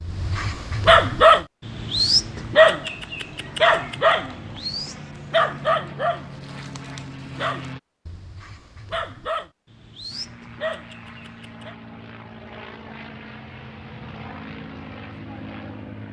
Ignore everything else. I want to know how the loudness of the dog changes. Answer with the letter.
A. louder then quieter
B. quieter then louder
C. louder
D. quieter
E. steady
D.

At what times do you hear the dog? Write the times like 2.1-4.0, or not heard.
0.0-11.8.